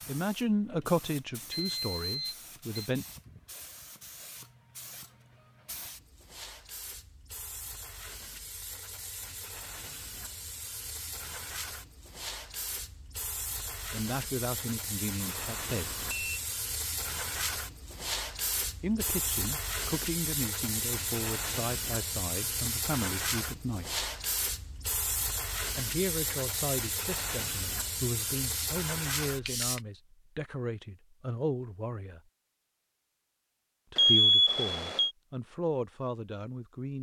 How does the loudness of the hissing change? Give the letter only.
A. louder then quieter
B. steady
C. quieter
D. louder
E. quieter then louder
D.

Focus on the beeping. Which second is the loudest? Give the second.
34 s.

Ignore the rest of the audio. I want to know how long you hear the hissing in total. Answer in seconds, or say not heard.
30 s.